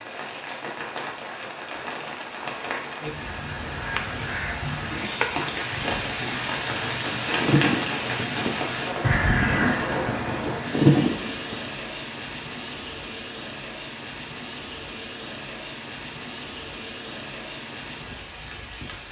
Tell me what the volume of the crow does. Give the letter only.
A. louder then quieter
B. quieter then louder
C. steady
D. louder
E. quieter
B.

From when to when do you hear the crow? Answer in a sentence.
You can hear the crow from 3.6 to 11.6 s.